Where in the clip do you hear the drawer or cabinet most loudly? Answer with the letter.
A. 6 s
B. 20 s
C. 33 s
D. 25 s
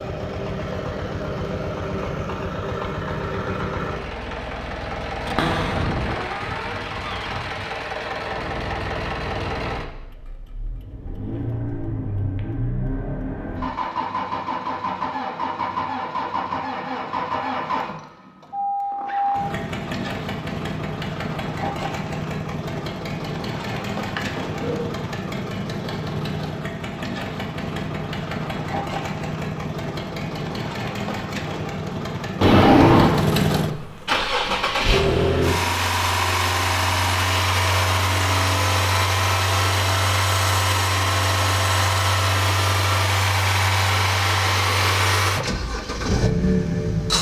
C.